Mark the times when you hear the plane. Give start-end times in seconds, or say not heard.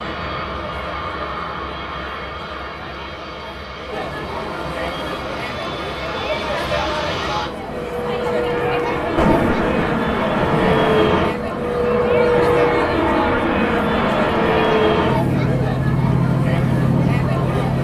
0.0-17.7.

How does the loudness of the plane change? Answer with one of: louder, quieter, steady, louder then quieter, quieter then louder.
louder.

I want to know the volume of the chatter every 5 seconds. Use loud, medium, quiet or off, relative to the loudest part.
medium, loud, loud, loud.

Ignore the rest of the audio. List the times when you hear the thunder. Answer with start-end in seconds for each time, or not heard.
9.2-10.9.